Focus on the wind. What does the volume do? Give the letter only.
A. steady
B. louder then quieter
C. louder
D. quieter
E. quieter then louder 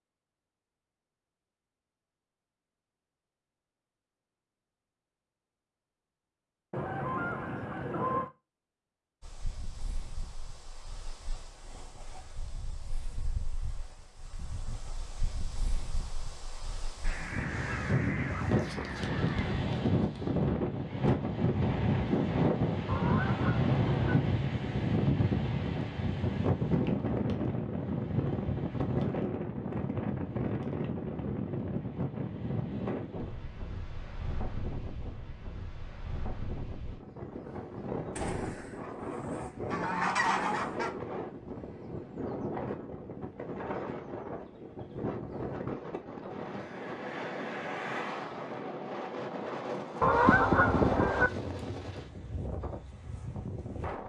B.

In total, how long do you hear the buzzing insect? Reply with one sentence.
The buzzing insect can't be heard in this clip.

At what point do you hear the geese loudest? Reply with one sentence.
The loudest moment of the geese is at 50 seconds.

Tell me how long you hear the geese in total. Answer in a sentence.
The geese can be heard for 10 seconds in total.